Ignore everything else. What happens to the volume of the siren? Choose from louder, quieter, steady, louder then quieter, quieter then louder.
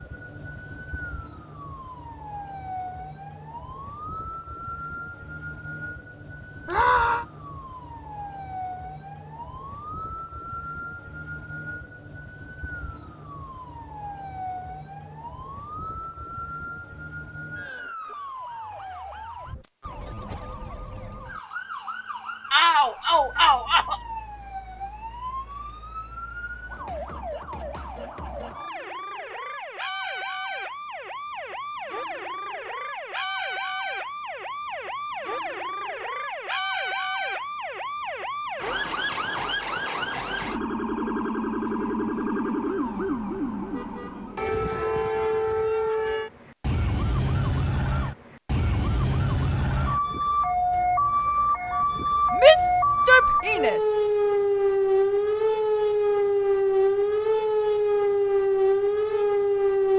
louder.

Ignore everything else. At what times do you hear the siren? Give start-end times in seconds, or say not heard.
0.0-59.9.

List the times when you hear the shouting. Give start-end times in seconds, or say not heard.
6.7-7.2, 22.5-23.9, 52.4-53.8.